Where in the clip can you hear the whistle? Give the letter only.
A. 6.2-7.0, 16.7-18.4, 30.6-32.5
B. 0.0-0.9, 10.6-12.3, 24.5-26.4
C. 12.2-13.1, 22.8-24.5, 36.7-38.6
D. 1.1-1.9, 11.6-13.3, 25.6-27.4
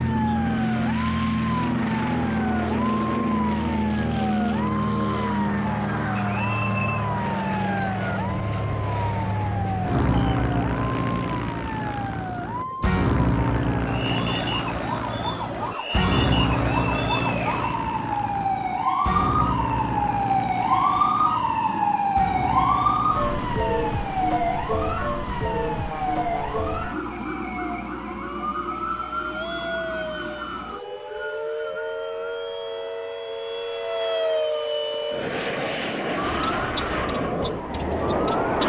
A.